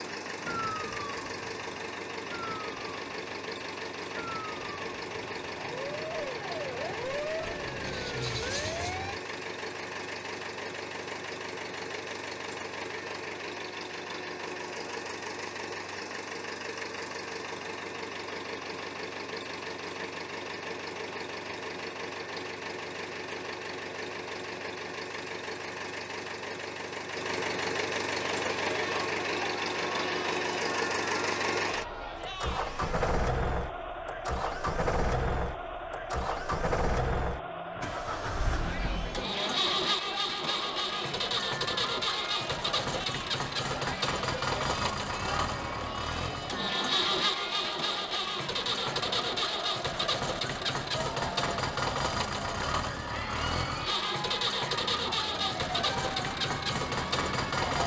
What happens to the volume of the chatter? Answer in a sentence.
The volume of the chatter stays about the same.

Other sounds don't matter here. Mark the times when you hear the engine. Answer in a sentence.
The engine can be heard from 0.0 to 57.8 s.